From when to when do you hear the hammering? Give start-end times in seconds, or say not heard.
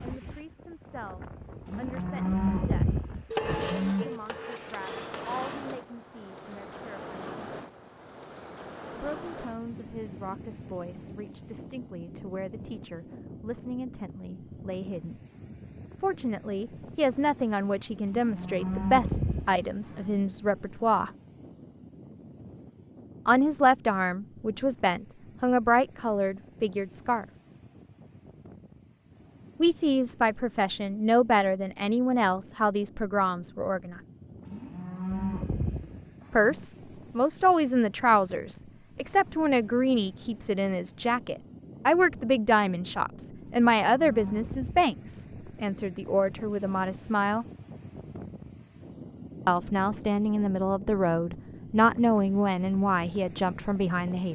3.3-5.8.